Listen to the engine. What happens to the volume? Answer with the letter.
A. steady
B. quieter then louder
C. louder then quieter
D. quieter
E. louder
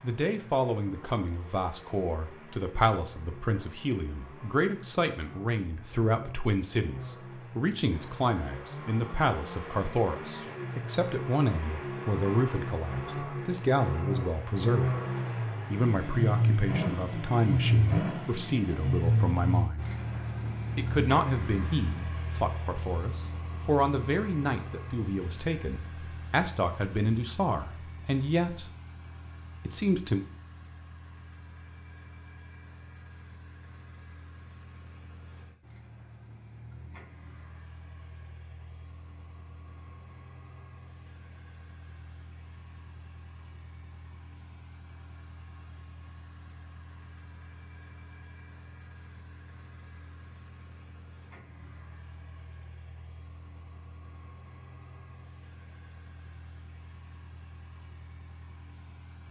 C.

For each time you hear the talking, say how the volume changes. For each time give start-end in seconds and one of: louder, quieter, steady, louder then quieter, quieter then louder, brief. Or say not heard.
0.0-14.9 steady
15.7-19.9 steady
20.8-28.6 steady
29.6-30.2 brief.